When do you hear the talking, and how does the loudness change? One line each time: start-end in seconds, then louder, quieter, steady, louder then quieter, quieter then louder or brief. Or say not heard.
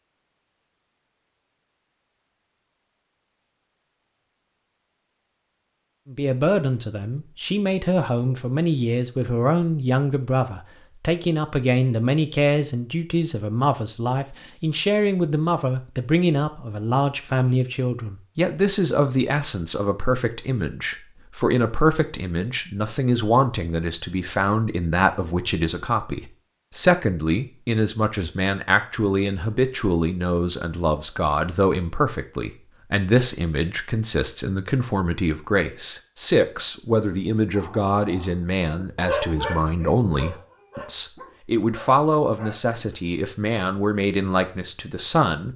6.1-45.5 steady.